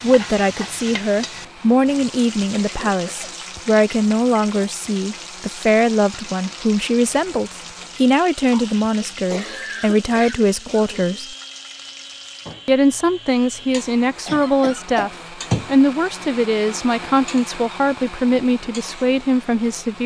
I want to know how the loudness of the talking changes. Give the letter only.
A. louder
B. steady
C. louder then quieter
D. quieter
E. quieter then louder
B.